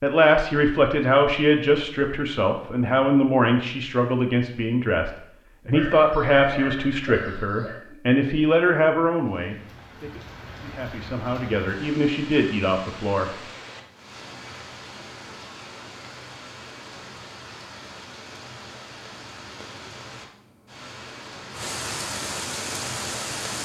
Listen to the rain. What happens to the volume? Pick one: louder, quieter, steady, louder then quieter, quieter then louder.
louder.